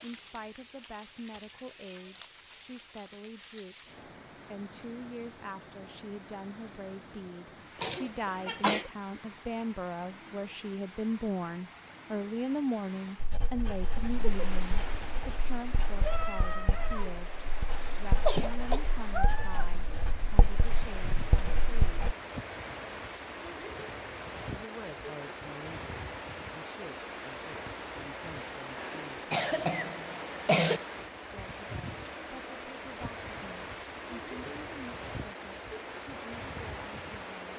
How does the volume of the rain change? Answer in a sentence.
The volume of the rain goes up.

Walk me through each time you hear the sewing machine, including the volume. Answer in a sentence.
The sewing machine can't be heard in this clip.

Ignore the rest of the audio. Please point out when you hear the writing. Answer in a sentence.
You can hear the writing from 13.2 to 22.1 s.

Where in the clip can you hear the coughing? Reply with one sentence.
The coughing can be heard from 7.8 to 8.9 s, from 17.8 to 18.9 s and from 28.8 to 30.8 s.